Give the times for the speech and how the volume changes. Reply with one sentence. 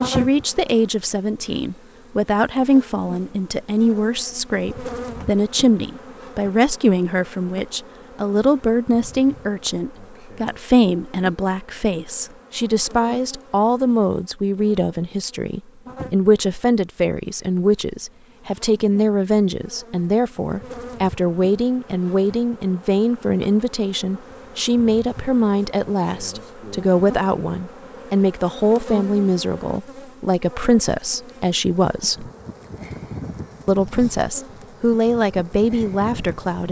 The speech can be heard from 0.0 to 32.3 s, at a steady volume; and briefly from 33.6 to 36.6 s.